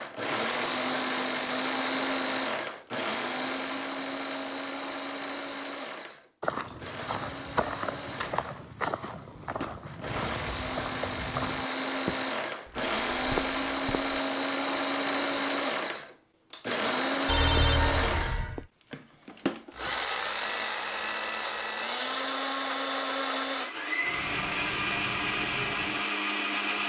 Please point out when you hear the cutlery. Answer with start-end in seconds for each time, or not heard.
not heard.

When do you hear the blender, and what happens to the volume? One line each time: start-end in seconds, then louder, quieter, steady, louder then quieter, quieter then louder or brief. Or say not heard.
0.0-26.8 quieter then louder.